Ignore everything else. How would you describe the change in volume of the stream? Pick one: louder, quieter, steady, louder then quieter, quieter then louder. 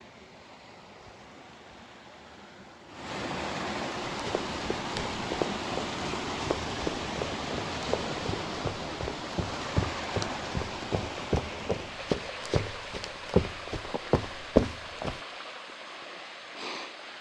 louder then quieter.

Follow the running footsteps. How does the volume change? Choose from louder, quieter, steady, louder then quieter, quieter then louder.
louder.